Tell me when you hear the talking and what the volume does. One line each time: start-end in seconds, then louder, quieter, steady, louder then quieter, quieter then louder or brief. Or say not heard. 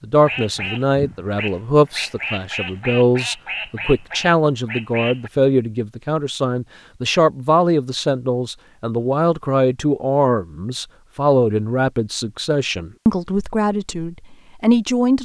0.0-15.1 steady.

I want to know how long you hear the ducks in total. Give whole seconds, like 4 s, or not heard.
5 s.